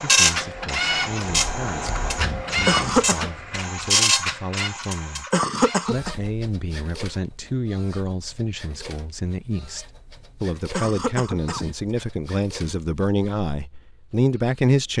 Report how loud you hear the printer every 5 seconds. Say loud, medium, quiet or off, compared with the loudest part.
loud, quiet, quiet.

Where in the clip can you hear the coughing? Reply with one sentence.
The coughing can be heard from 2.6 to 3.3 s, from 5.3 to 6.2 s and from 10.7 to 11.7 s.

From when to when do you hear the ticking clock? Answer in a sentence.
You can't hear the ticking clock here.